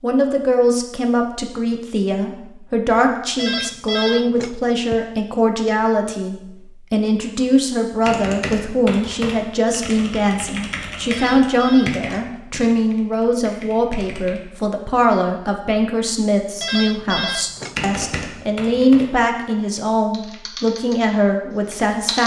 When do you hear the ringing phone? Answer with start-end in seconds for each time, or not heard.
3.4-5.0, 11.1-12.8, 16.6-18.2.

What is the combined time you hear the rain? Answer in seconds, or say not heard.
not heard.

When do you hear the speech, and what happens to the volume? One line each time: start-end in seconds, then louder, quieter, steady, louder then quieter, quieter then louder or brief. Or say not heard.
0.0-22.2 steady.